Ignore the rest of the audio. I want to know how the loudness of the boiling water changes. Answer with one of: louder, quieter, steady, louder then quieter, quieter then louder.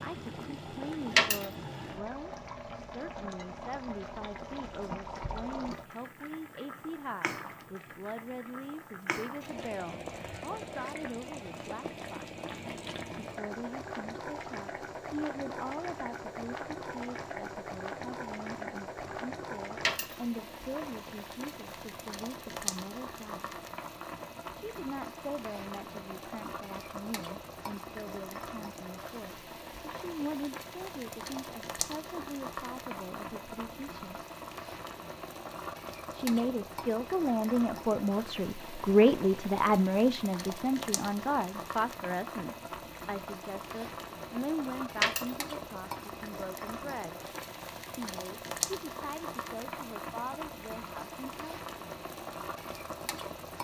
steady.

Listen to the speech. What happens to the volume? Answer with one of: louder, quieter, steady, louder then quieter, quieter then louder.
louder then quieter.